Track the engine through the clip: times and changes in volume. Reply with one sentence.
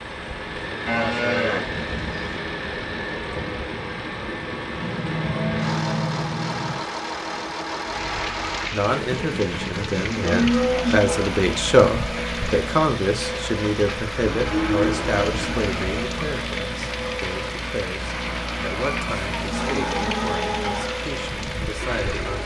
You can hear the engine from 0.0 to 22.4 s, at a steady volume.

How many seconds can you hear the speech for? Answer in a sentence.
The speech can be heard for 14 seconds in total.